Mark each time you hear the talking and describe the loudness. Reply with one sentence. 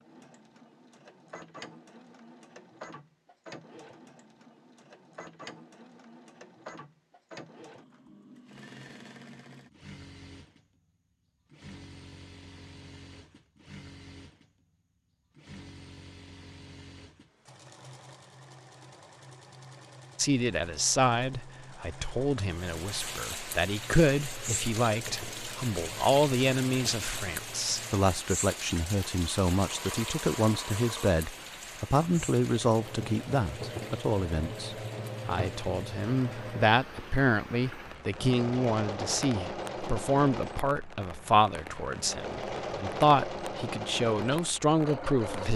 You can hear the talking from 20.1 to 45.5 s, at a steady volume.